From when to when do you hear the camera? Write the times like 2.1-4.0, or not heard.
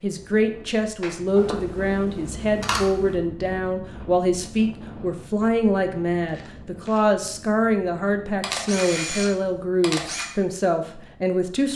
1.4-3.1, 8.4-10.3.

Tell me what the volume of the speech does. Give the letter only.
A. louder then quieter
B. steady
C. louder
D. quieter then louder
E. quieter
B.